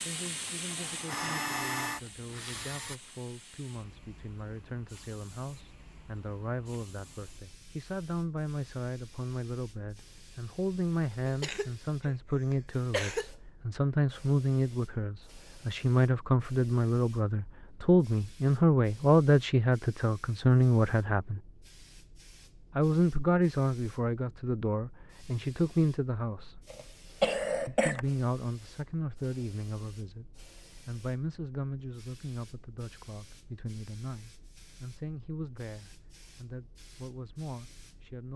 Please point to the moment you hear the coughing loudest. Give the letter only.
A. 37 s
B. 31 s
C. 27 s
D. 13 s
C.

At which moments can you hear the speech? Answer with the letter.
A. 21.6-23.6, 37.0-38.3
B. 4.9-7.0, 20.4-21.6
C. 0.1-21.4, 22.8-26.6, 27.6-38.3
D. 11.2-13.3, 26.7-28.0
C.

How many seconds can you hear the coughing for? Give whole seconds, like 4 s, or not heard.
3 s.